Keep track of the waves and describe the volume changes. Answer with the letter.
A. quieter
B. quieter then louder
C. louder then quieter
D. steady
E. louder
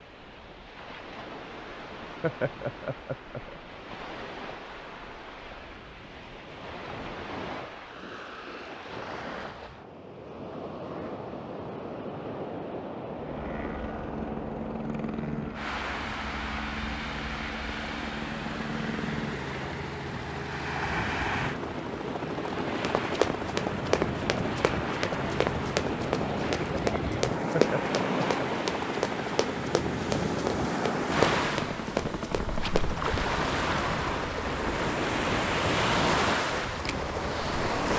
E.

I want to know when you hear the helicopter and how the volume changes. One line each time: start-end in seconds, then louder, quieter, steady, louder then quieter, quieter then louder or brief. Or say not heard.
13.2-37.9 steady.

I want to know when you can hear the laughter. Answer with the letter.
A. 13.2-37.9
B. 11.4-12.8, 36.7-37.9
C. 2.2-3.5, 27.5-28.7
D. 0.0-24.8
C.